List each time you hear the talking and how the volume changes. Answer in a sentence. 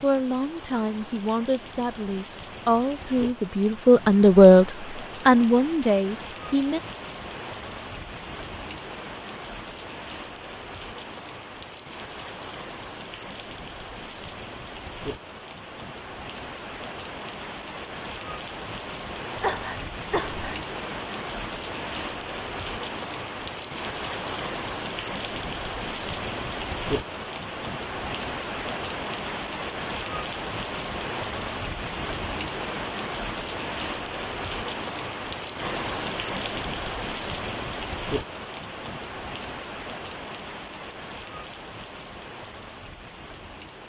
You can hear the talking from 0.0 to 6.8 s, getting louder then quieter.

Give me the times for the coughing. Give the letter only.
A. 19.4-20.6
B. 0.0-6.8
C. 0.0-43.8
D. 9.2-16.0
A.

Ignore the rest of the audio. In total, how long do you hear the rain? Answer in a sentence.
You can hear the rain for 44 seconds altogether.